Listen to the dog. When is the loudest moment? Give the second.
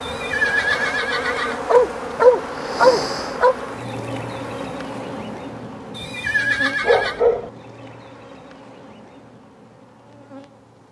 2 s.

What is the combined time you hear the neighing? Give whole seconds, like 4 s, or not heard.
3 s.